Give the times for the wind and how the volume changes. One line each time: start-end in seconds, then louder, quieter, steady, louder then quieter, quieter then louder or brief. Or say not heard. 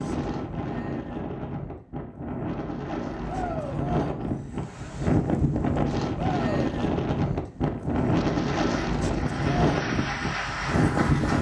0.0-11.3 louder.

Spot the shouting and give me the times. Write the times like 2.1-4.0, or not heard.
3.2-3.9, 6.2-6.7.